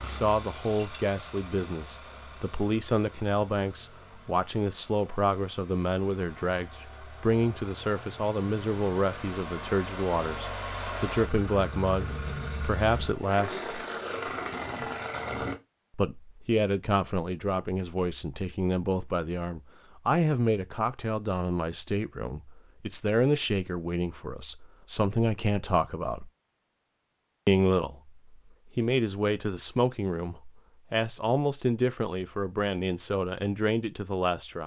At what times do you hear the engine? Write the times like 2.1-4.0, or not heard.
0.0-15.6.